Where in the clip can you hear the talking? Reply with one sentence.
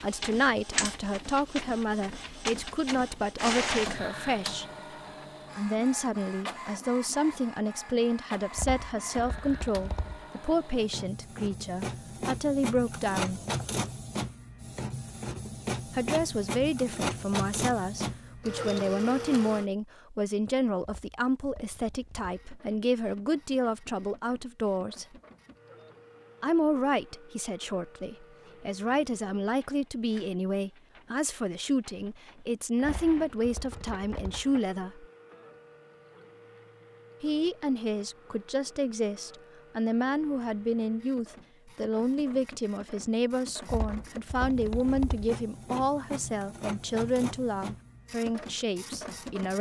The talking can be heard from 0.0 to 4.7 s, from 5.5 to 13.4 s, from 15.9 to 25.1 s, from 26.4 to 35.0 s and from 37.2 to 49.5 s.